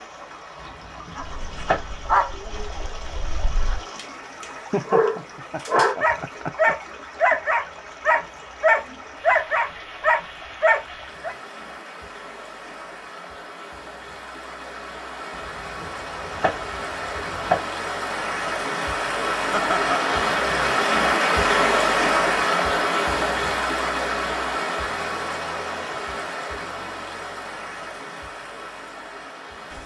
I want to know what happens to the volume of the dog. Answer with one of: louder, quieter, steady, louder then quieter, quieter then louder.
louder.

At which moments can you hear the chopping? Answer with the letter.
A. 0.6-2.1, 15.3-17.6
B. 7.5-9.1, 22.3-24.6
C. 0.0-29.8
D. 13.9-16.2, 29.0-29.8
A.